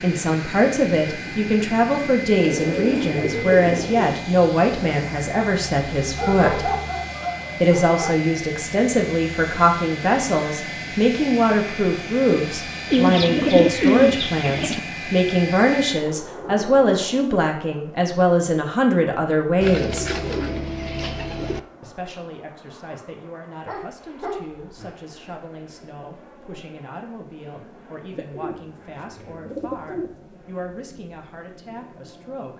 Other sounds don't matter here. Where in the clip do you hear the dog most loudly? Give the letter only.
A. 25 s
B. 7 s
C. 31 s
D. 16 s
B.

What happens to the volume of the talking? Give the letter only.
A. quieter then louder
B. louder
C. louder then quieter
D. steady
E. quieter
E.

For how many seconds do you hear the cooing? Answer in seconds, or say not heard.
8 s.